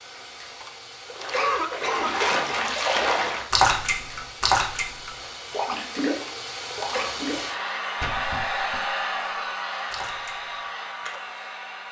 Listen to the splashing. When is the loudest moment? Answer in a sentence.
The loudest moment of the splashing is at 4 seconds.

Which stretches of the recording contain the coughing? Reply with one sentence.
The coughing can be heard from 0.6 to 2.5 s and from 6.2 to 7.2 s.